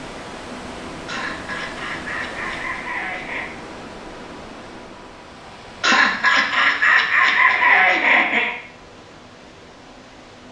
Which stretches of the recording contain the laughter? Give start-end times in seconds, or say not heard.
1.1-3.5, 5.8-8.6.